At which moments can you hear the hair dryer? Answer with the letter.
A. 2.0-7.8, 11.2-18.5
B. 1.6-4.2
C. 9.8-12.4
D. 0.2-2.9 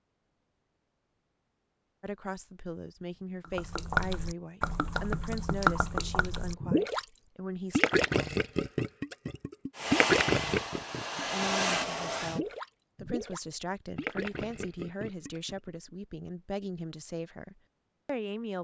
C.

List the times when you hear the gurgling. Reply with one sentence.
You can hear the gurgling from 3.5 to 7.0 s and from 7.7 to 15.7 s.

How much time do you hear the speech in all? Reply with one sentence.
You can hear the speech for 13 seconds altogether.